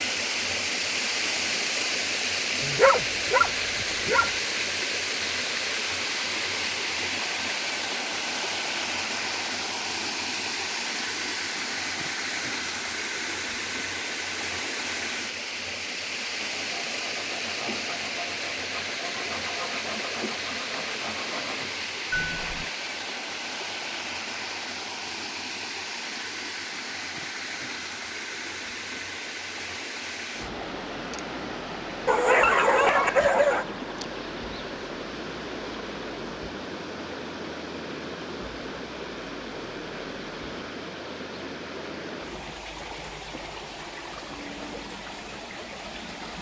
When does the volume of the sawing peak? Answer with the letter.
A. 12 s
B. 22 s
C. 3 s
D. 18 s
B.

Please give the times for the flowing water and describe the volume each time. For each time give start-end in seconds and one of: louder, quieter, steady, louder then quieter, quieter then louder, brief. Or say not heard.
0.0-46.3 quieter.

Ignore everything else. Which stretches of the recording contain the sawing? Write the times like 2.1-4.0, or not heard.
16.4-22.7.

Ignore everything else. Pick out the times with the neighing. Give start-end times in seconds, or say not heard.
not heard.